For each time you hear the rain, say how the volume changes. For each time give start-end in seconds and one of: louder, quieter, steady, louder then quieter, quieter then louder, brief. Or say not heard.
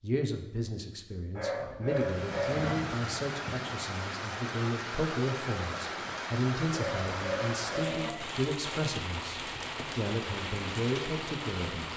1.9-11.9 steady.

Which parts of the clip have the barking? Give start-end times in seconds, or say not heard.
1.4-2.8, 6.7-8.1.